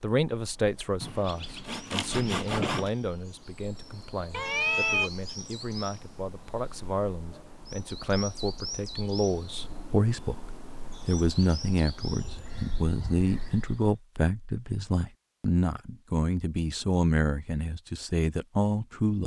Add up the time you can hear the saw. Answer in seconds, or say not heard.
2 s.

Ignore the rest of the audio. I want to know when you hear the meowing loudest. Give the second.
5 s.